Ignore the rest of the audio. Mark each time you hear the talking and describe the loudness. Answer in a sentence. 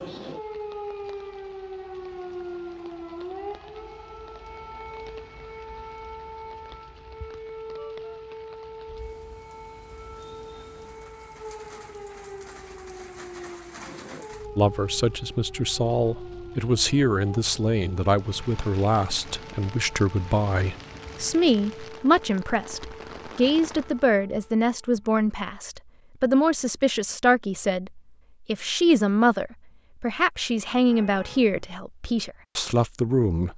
The talking can be heard from 14.6 to 33.5 s, at a steady volume.